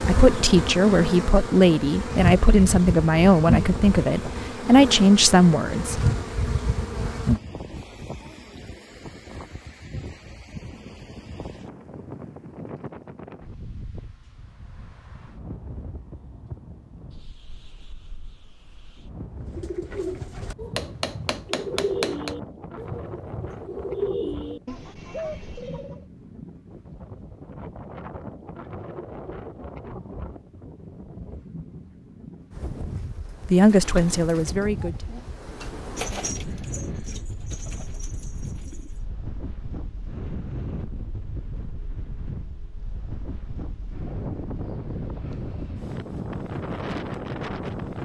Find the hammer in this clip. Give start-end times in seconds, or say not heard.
20.8-22.4.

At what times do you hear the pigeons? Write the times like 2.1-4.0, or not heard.
19.4-26.0, 32.5-39.0.